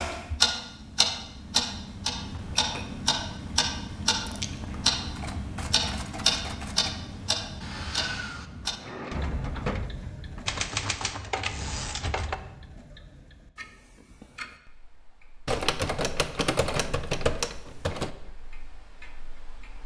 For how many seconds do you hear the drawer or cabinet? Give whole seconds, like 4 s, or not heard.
2 s.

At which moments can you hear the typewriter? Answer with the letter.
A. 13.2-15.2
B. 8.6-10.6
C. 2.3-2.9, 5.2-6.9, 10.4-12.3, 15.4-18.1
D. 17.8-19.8
C.